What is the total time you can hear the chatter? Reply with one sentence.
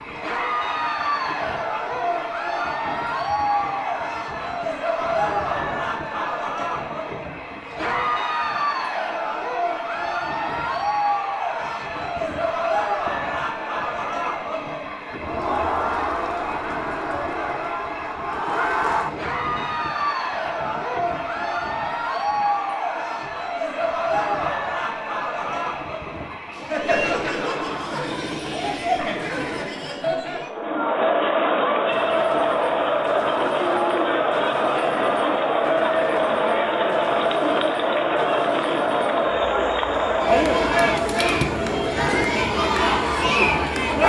The chatter can be heard for 44 seconds in total.